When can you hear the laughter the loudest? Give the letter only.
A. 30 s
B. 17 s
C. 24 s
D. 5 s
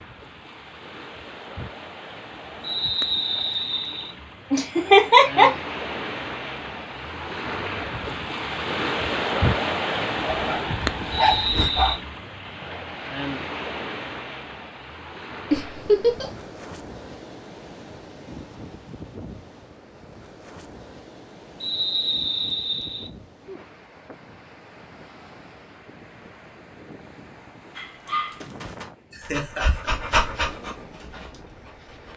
D.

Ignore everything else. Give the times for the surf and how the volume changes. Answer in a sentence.
The surf can be heard from 0.0 to 32.1 s, getting louder then quieter.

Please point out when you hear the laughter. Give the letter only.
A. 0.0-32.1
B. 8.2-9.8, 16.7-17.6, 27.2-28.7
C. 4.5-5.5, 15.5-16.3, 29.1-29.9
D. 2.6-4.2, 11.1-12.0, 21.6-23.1
C.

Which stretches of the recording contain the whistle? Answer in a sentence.
You can hear the whistle from 2.6 to 4.2 s, from 11.1 to 12.0 s and from 21.6 to 23.1 s.